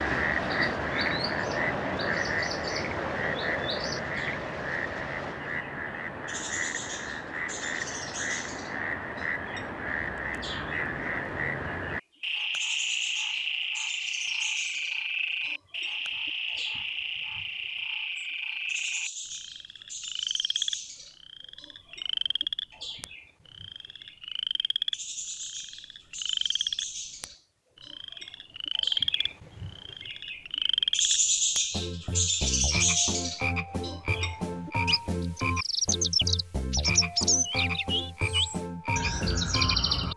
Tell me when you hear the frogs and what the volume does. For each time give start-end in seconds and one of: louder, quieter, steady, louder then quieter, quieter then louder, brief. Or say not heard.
0.0-40.1 steady.